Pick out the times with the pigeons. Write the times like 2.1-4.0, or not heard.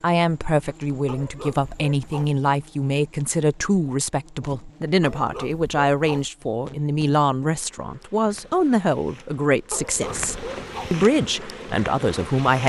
not heard.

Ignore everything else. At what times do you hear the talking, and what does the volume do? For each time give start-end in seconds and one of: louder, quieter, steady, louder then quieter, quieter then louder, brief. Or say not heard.
0.0-12.6 steady.